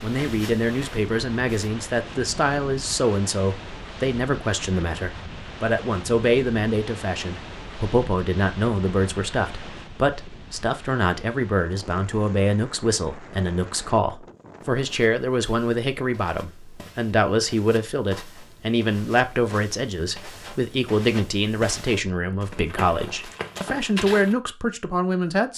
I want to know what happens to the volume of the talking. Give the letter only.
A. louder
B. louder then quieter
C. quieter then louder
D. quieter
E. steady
E.